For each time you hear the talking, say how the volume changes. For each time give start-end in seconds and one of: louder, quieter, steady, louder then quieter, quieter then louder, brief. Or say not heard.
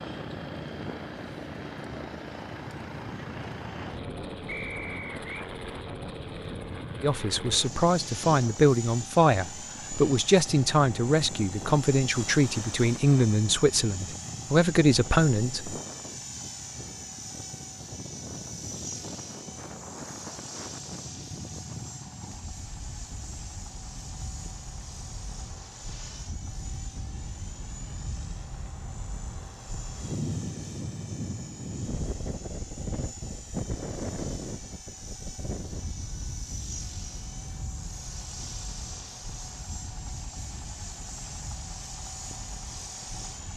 7.0-15.8 steady.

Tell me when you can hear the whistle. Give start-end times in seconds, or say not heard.
4.5-5.5.